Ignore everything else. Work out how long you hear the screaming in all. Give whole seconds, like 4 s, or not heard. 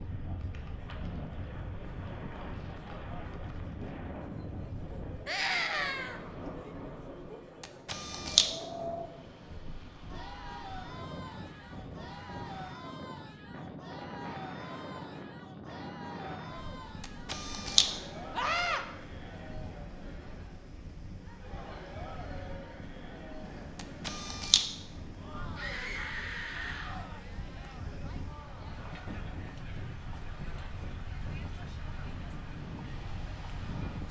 3 s.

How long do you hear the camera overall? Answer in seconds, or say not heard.
3 s.